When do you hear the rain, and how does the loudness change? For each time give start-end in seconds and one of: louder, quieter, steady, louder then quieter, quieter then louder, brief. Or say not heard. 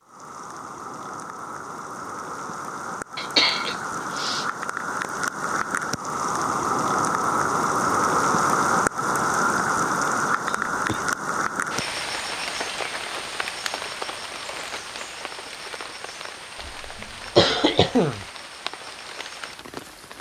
0.0-20.1 louder then quieter.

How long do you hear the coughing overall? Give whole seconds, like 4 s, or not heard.
4 s.